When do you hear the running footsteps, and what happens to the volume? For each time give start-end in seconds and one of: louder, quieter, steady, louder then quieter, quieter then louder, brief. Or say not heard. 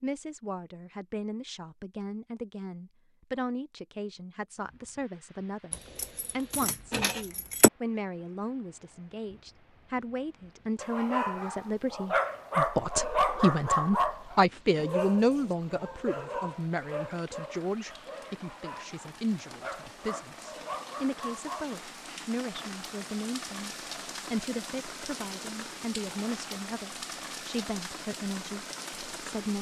not heard.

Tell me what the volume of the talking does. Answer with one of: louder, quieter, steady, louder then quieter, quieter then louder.
louder then quieter.